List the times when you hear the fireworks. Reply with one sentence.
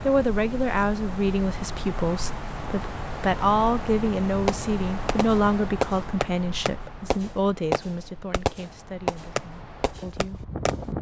You can hear the fireworks from 4.5 to 10.8 s.